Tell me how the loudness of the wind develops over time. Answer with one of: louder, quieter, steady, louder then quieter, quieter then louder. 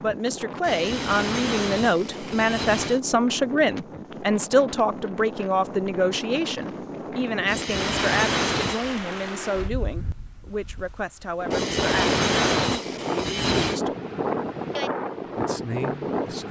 louder.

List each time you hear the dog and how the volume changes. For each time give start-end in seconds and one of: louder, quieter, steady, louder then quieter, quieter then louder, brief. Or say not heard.
not heard.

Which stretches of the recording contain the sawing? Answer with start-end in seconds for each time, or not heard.
0.6-3.0, 7.5-9.0, 11.5-13.8.